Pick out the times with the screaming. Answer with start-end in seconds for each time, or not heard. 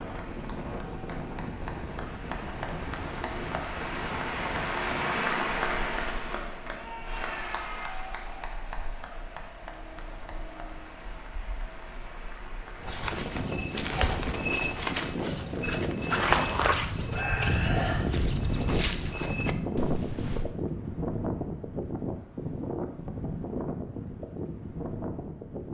6.7-8.1, 17.1-18.0.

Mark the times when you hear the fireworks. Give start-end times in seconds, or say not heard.
not heard.